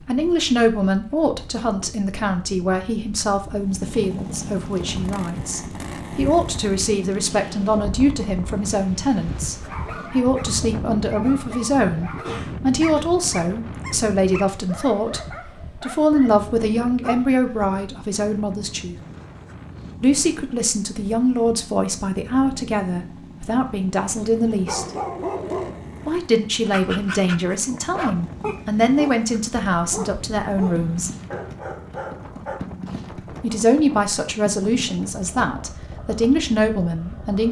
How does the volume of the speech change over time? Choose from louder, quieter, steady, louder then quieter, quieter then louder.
steady.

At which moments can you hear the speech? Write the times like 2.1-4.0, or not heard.
0.1-18.9, 20.0-24.9, 26.1-31.1, 33.4-37.4.